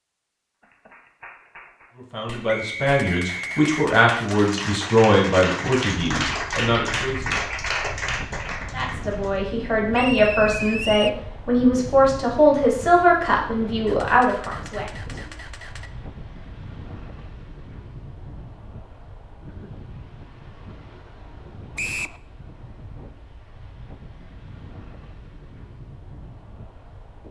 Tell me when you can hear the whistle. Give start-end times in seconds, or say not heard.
2.5-3.8, 9.9-11.2, 21.8-22.2.